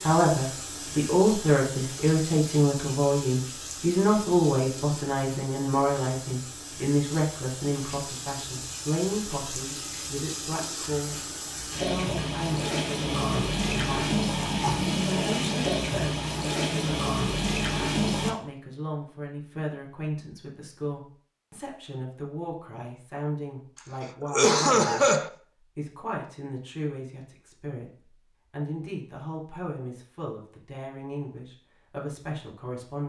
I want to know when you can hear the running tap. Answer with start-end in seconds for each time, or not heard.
0.0-18.4.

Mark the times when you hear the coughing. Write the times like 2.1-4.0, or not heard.
24.2-25.3.